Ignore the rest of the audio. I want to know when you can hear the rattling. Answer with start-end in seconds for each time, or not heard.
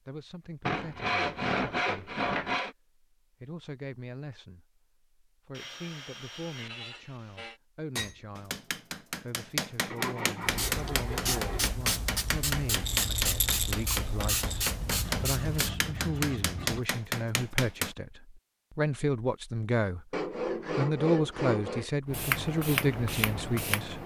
12.8-14.8.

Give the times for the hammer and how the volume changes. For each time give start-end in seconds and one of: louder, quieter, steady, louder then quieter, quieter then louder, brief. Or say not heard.
8.0-17.9 steady.